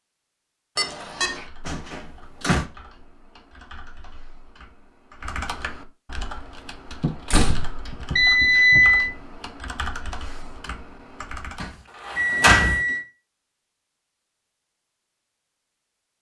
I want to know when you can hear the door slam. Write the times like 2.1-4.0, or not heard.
1.6-2.6, 7.2-7.8, 11.6-12.8.